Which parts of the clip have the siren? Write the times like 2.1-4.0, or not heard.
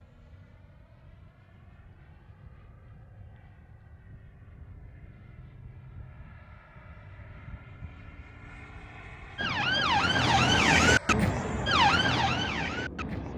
9.3-13.3.